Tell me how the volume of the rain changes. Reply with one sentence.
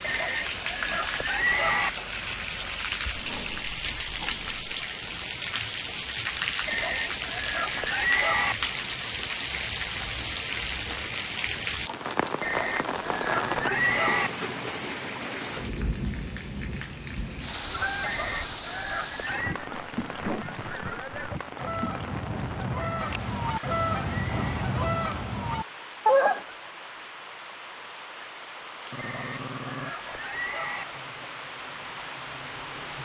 The volume of the rain goes down.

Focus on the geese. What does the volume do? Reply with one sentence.
The volume of the geese goes up.